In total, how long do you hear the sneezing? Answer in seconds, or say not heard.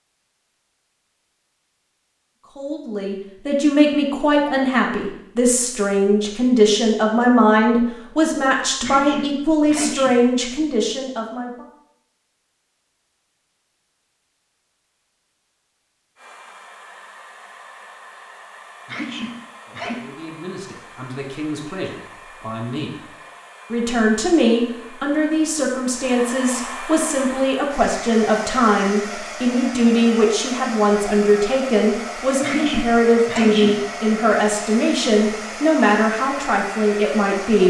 4 s.